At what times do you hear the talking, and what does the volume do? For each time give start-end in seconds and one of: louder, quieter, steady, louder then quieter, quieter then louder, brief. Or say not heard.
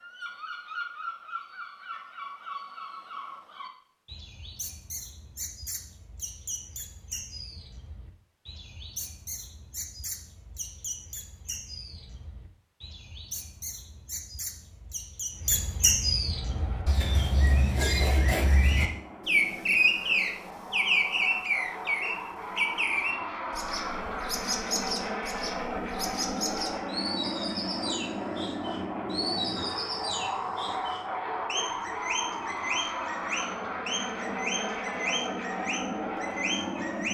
not heard.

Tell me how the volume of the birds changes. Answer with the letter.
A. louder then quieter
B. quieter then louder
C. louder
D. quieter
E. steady
A.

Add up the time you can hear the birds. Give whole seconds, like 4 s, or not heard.
37 s.